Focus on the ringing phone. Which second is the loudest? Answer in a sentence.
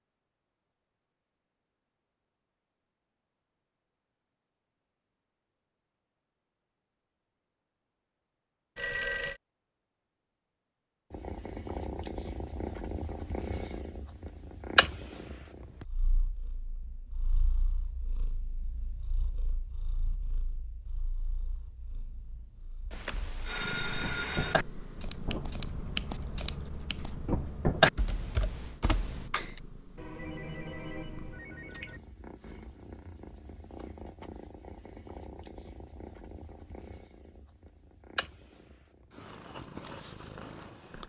The volume of the ringing phone peaks at 9 seconds.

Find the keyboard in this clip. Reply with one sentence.
The keyboard can be heard from 24.1 to 29.5 s.